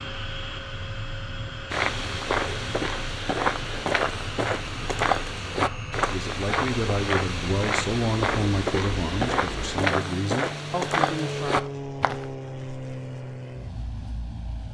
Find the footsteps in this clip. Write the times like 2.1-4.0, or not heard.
1.7-12.2.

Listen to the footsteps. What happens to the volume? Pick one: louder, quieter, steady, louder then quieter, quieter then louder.
steady.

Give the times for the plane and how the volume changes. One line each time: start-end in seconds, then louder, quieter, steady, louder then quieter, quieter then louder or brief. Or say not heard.
0.0-14.6 steady.